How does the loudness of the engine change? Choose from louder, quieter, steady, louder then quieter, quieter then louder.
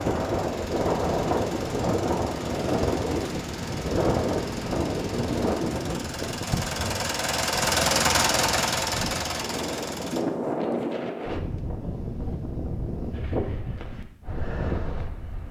louder.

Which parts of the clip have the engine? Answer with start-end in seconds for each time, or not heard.
0.0-10.2.